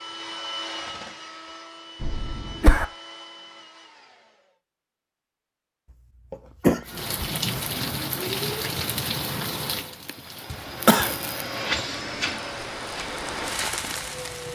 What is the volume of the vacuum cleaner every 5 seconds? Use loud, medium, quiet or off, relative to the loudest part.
medium, off, loud.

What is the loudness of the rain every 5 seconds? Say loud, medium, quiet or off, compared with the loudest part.
off, loud, medium.